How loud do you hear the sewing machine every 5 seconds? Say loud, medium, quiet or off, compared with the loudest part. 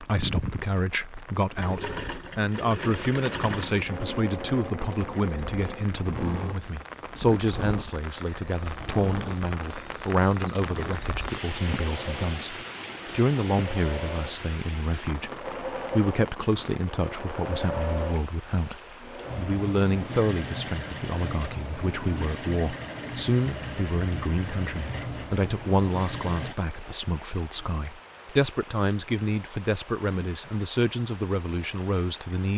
loud, loud, loud, loud, loud, loud, off.